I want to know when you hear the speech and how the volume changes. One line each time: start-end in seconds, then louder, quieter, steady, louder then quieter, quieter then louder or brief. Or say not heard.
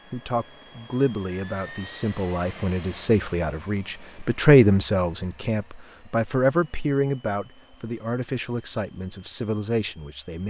0.1-10.4 louder then quieter.